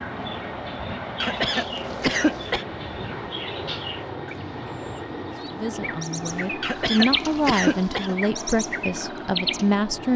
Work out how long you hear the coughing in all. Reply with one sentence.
You can hear the coughing for 3 seconds altogether.